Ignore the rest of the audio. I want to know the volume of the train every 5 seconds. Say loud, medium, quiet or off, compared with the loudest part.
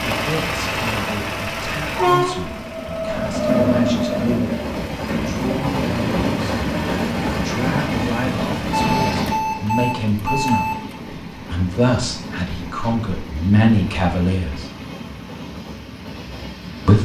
loud, loud, quiet, quiet.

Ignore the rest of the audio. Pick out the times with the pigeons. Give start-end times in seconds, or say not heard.
not heard.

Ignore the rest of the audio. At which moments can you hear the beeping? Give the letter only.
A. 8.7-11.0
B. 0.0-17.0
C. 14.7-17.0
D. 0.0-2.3
A.